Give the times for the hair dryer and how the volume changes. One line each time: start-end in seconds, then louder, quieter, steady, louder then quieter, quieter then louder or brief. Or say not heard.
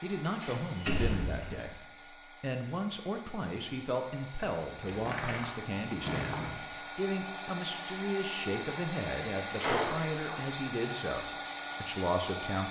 0.0-12.6 louder.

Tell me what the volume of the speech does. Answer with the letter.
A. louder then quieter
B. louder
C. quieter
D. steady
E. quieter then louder
D.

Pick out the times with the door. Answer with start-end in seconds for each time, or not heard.
0.4-1.6, 4.8-6.5, 9.4-10.3.